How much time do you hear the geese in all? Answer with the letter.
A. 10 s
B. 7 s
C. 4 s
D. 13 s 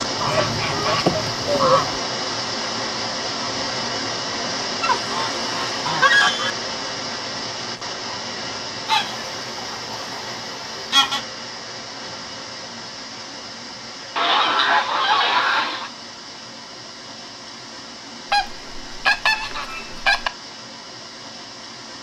A.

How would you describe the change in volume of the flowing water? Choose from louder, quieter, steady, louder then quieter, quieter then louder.
quieter.